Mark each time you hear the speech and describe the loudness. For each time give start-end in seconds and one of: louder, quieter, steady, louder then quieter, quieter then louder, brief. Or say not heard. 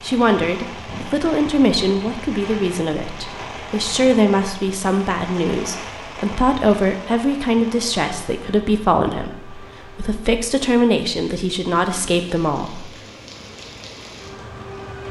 0.0-12.9 steady.